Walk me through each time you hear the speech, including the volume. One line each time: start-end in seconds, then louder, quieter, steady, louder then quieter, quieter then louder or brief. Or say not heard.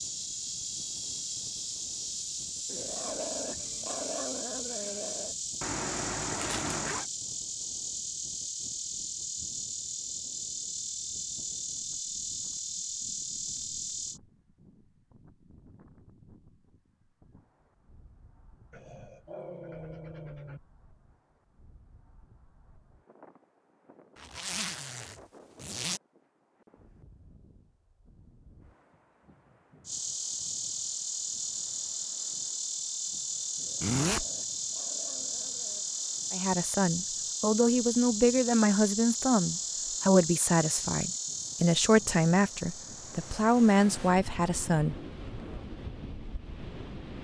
36.3-45.0 steady.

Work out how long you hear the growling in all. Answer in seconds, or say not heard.
7 s.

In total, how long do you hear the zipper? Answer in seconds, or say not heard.
4 s.